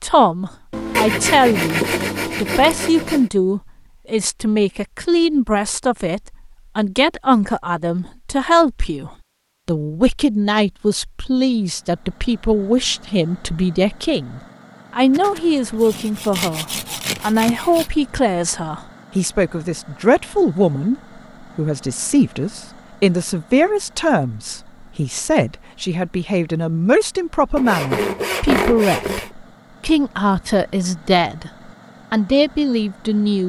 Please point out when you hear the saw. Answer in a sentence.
You can hear the saw from 0.7 to 3.3 s, from 15.1 to 17.9 s and from 27.6 to 29.3 s.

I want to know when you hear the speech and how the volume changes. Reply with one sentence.
You can hear the speech from 0.0 to 20.9 s, at a steady volume; from 21.6 to 31.5 s, at a steady volume; and briefly from 32.1 to 33.4 s.